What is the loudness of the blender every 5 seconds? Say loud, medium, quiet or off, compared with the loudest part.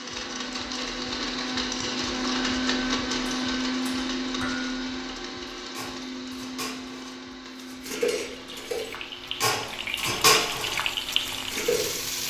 loud, medium, quiet.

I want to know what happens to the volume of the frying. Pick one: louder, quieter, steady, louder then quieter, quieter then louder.
louder.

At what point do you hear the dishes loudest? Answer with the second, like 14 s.
10 s.